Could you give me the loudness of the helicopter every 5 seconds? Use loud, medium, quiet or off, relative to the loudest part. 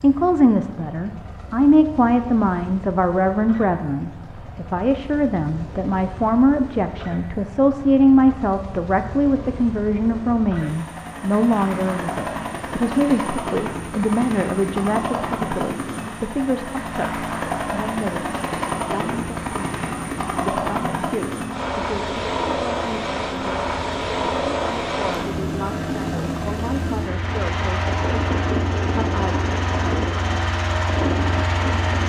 quiet, quiet, medium, loud, loud, loud, loud.